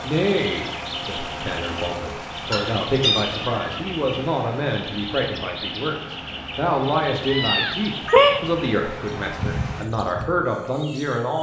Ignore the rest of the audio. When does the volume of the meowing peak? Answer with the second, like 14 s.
8 s.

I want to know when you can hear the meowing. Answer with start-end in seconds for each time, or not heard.
2.5-3.6, 7.3-8.4.